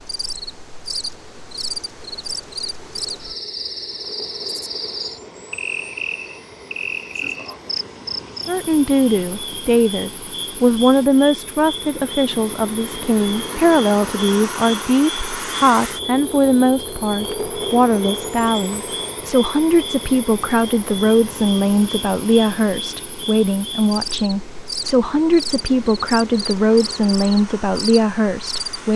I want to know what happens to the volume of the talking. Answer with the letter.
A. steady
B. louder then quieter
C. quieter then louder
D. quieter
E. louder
A.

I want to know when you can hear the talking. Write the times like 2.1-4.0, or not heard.
8.4-28.9.